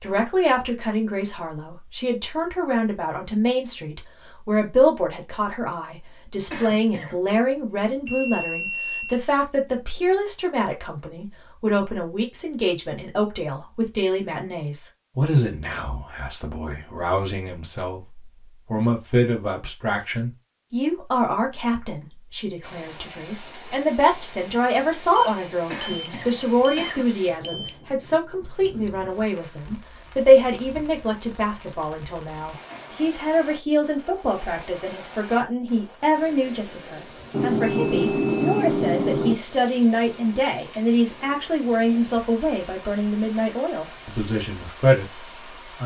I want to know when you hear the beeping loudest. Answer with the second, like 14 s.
38 s.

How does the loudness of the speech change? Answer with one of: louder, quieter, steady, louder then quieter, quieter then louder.
steady.